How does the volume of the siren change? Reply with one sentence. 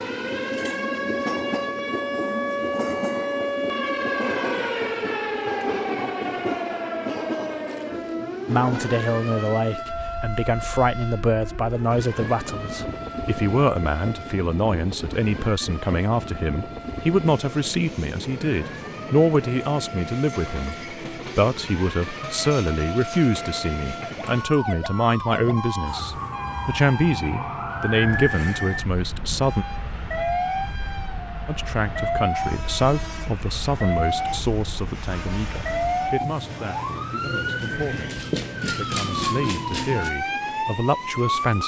The volume of the siren goes down, then up.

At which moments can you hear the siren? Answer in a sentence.
You can hear the siren from 0.0 to 41.6 s.